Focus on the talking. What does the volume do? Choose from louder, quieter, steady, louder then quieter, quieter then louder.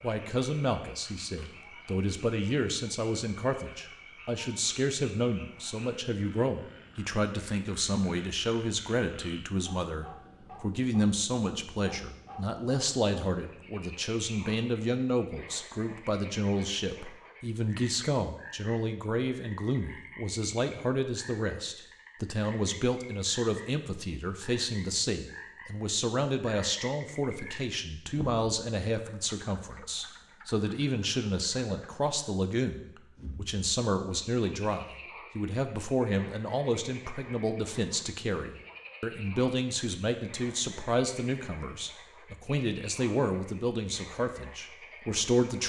steady.